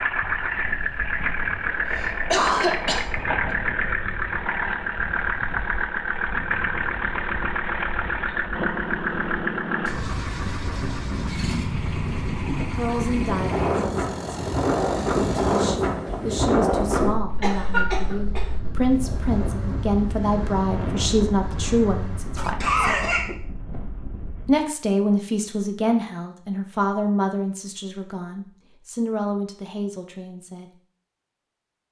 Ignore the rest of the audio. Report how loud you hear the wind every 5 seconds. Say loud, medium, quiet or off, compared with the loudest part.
quiet, quiet, loud, loud, medium, off, off.